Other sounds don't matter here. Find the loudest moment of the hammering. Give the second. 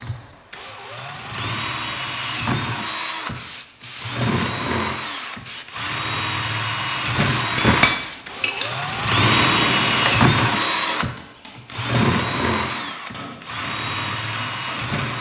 8 s.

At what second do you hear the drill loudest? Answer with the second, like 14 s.
10 s.